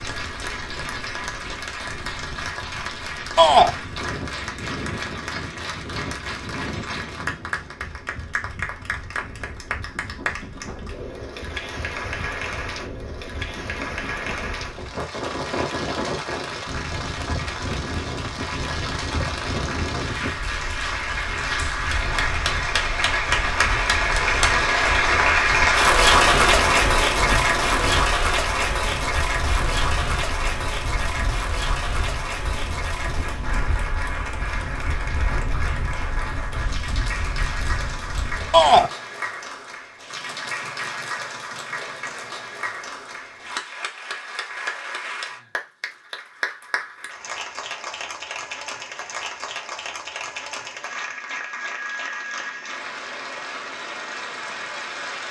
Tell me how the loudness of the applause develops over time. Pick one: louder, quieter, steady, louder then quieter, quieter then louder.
louder then quieter.